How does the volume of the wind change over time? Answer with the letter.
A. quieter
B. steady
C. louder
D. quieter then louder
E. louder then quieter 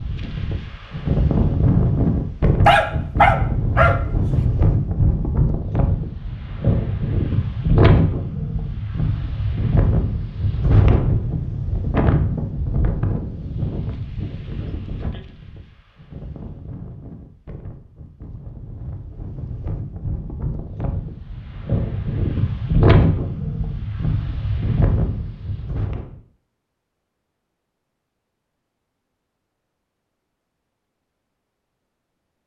D.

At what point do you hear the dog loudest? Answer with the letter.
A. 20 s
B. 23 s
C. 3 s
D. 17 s
C.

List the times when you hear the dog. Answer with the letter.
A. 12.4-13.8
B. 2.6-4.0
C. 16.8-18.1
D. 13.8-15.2
B.